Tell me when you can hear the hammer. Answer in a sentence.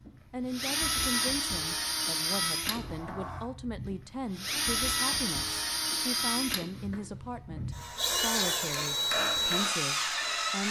You can hear the hammer from 8.6 to 10.6 s.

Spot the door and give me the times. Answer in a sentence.
You can hear the door from 2.7 to 3.5 s and from 6.7 to 7.8 s.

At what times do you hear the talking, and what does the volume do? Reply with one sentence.
The talking can be heard from 0.3 to 10.6 s, at a steady volume.